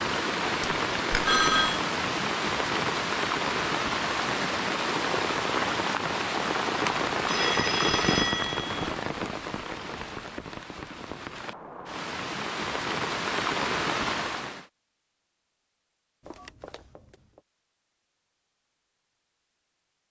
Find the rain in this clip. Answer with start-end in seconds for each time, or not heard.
0.0-14.7.